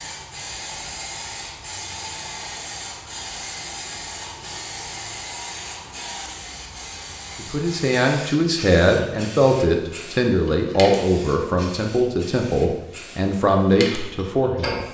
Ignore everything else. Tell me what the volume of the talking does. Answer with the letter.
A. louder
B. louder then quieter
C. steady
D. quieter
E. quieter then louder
C.